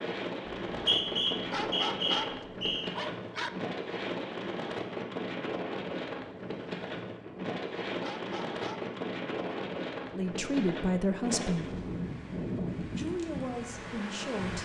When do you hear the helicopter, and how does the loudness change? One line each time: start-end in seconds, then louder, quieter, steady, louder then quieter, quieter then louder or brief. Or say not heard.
not heard.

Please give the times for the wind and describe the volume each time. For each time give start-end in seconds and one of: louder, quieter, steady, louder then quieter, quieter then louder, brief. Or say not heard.
0.0-14.6 steady.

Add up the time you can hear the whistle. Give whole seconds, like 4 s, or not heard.
2 s.